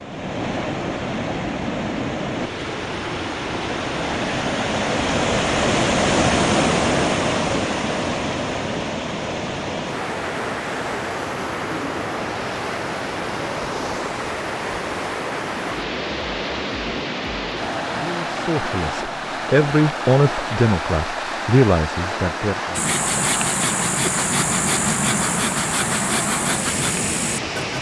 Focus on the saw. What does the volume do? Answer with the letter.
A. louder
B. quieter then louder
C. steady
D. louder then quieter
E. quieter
C.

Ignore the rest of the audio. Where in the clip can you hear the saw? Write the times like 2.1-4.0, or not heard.
22.8-27.7.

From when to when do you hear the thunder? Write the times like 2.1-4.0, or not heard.
not heard.